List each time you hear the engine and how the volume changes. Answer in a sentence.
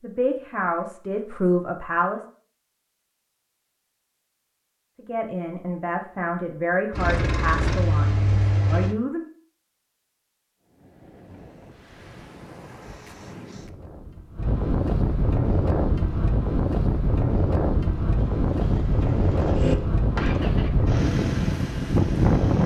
The engine can be heard briefly from 6.9 to 8.9 s; and from 18.1 to 22.6 s, getting louder then quieter.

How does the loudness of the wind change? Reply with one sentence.
The volume of the wind goes up.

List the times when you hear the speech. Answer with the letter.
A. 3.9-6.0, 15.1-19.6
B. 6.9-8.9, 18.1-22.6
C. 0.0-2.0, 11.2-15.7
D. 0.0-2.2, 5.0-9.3
D.